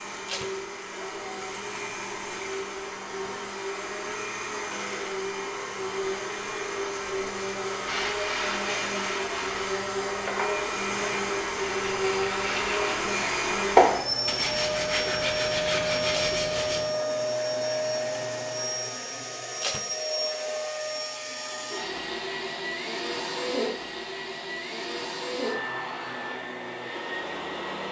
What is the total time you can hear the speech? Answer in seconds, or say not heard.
not heard.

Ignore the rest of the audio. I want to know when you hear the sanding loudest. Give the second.
14 s.